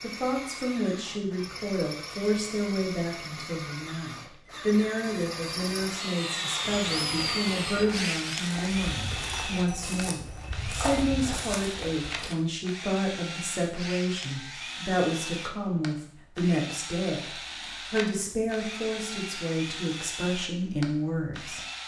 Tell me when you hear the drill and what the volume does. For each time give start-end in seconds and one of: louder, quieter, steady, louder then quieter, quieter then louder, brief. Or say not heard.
0.0-21.8 louder then quieter.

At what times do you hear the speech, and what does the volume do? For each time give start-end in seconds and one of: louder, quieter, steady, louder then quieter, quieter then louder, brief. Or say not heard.
0.0-21.6 steady.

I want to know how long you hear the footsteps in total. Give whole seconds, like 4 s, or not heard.
6 s.